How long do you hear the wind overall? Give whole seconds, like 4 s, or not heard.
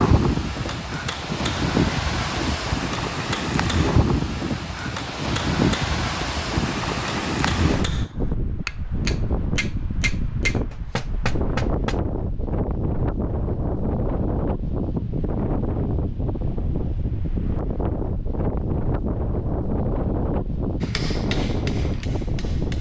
23 s.